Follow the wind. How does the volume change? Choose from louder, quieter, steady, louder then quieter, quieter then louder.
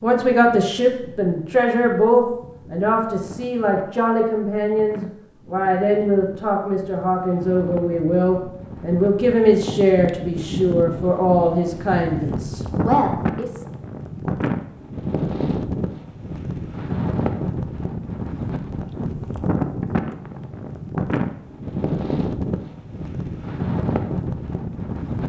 louder.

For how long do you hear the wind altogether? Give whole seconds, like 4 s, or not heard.
25 s.